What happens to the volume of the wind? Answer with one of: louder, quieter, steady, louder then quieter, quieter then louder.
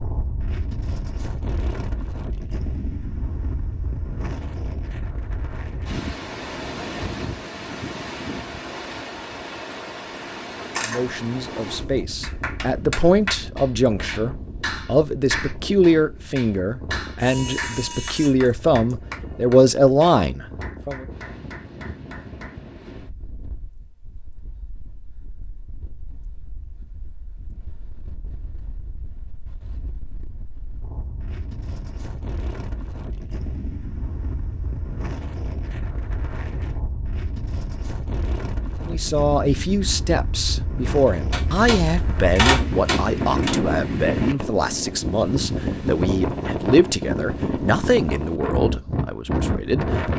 quieter then louder.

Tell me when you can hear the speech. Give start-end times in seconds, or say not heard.
10.8-21.1, 38.9-50.1.